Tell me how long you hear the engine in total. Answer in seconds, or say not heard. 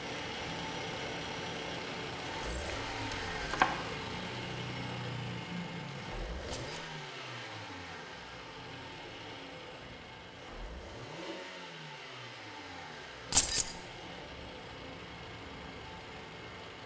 17 s.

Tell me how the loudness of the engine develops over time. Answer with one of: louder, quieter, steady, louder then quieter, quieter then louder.
quieter.